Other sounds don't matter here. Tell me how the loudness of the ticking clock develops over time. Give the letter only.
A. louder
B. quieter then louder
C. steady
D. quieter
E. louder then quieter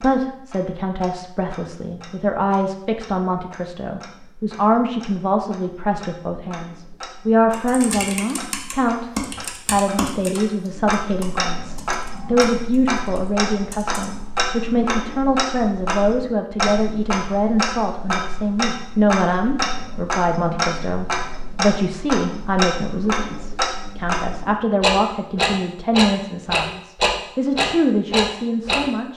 A.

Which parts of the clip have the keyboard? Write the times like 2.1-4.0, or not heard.
7.5-14.1.